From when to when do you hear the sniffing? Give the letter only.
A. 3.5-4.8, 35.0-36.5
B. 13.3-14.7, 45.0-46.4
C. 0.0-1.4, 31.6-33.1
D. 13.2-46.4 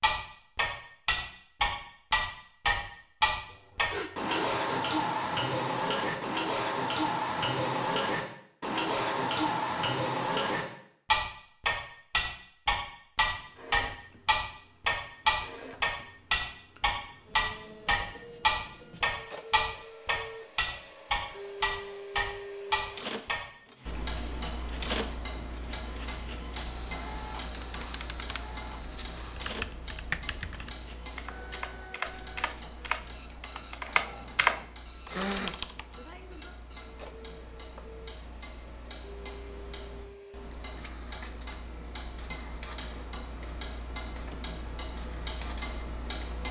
A.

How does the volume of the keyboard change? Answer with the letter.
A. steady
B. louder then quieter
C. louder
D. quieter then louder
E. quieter
C.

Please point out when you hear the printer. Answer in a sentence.
You can hear the printer from 13.2 to 46.4 s.